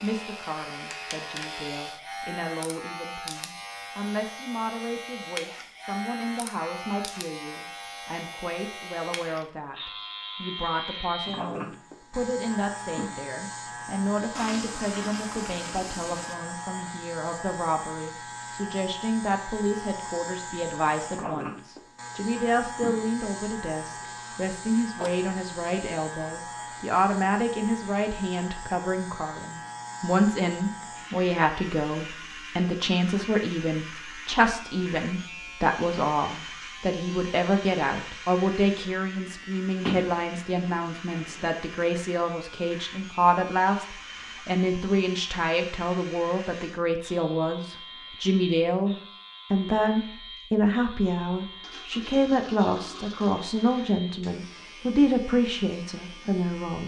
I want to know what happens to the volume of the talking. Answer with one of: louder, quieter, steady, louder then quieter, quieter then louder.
louder.